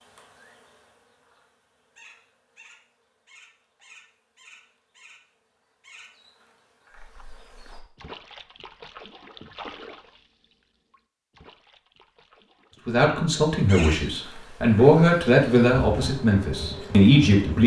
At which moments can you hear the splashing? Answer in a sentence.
You can hear the splashing from 7.0 to 13.0 s.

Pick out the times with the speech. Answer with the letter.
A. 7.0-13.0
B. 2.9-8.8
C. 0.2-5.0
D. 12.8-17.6
D.